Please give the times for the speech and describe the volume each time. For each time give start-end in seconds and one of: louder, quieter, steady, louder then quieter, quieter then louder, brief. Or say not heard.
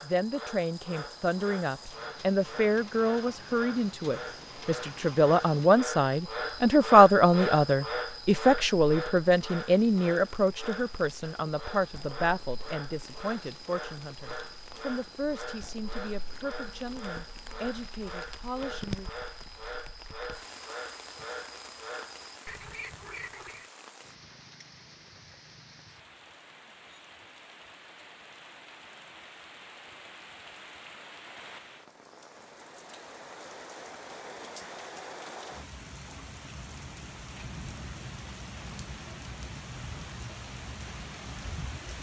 0.0-19.1 louder then quieter.